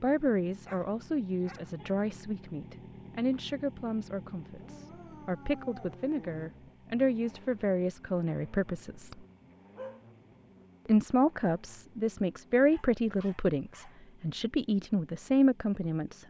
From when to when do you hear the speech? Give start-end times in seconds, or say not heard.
0.0-9.2, 10.8-16.2.